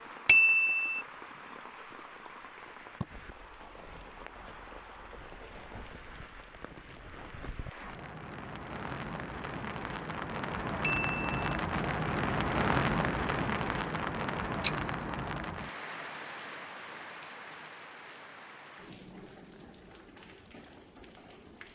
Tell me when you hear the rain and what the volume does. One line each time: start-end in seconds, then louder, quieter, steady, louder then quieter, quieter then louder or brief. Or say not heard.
0.0-21.7 louder then quieter.